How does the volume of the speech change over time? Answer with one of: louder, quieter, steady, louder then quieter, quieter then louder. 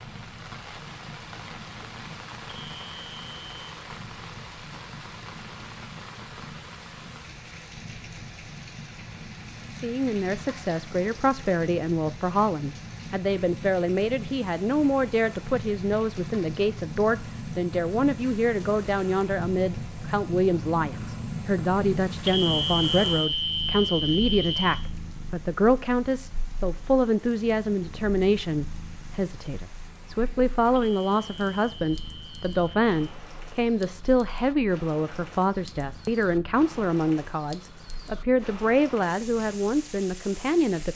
steady.